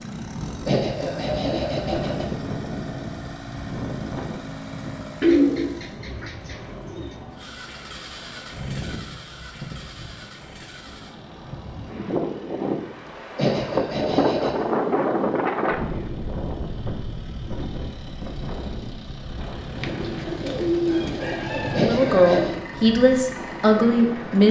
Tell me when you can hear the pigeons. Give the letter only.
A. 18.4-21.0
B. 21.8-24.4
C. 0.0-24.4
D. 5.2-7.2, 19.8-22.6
D.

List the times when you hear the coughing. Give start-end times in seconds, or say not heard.
0.7-2.2, 13.3-14.7, 21.8-22.6.